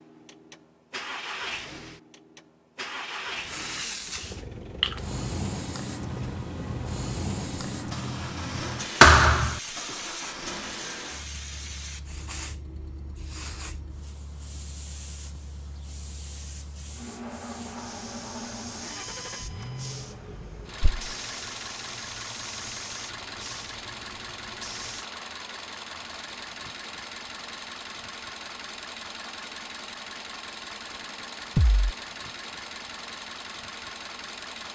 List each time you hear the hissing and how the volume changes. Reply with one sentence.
The hissing can be heard from 3.4 to 25.1 s, getting quieter.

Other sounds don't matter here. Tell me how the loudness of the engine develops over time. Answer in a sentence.
The loudness of the engine stays about the same.